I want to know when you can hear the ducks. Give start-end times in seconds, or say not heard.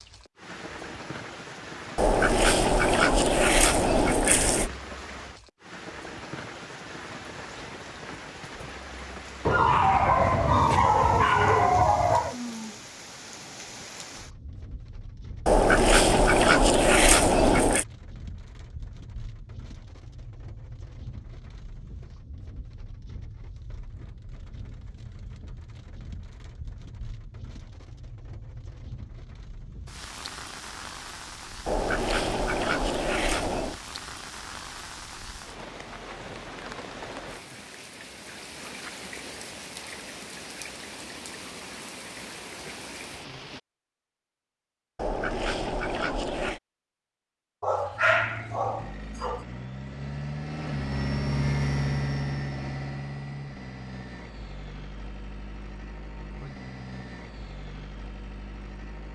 1.9-4.7, 15.4-17.9, 31.6-33.8, 45.0-46.6.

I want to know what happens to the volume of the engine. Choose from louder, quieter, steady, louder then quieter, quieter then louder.
louder then quieter.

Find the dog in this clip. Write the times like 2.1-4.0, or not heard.
9.4-12.3, 47.6-49.4.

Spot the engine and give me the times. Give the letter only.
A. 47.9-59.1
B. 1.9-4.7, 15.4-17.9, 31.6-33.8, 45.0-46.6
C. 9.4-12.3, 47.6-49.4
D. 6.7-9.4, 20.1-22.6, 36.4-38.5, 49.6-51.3
A.